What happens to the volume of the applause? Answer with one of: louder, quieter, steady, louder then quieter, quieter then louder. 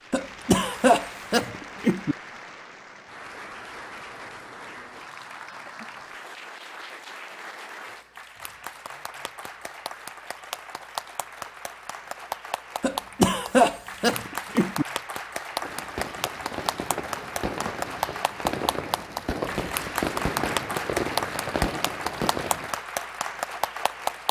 louder.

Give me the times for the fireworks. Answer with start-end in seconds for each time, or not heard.
15.5-22.8.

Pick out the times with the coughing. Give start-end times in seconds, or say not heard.
0.1-2.1, 12.8-14.8.